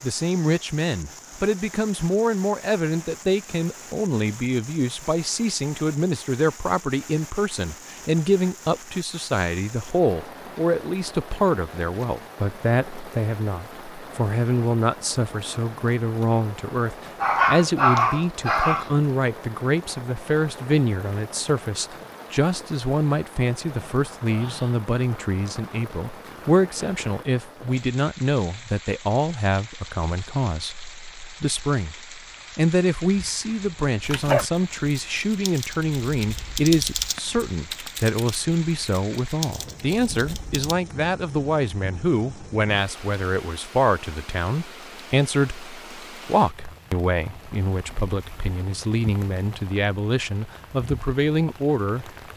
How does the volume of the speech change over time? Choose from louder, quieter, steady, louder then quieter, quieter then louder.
steady.